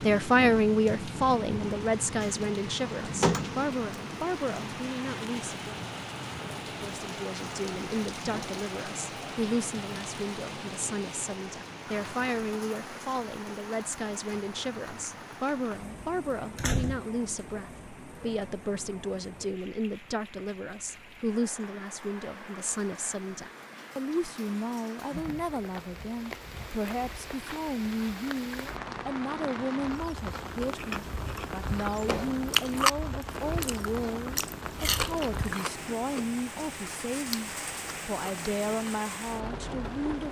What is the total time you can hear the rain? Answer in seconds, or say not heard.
40 s.